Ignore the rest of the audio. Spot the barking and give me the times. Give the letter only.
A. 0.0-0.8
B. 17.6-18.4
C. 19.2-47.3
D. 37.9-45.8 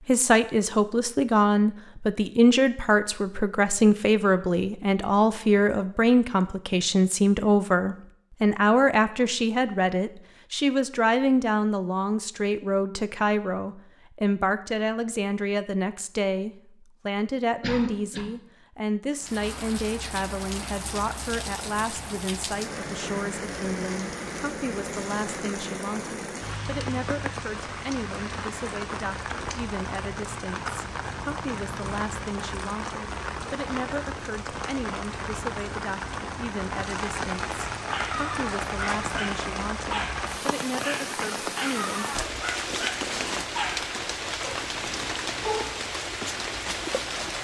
D.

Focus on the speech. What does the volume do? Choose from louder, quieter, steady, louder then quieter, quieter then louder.
quieter.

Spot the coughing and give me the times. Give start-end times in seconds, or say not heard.
17.6-18.4.